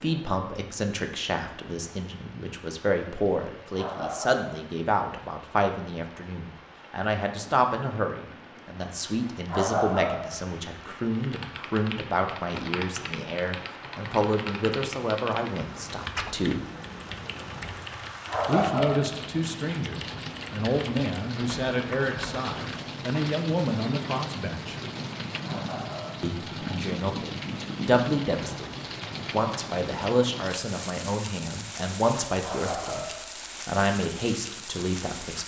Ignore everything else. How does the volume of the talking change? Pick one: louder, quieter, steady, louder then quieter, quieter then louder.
steady.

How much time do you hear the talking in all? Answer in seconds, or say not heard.
32 s.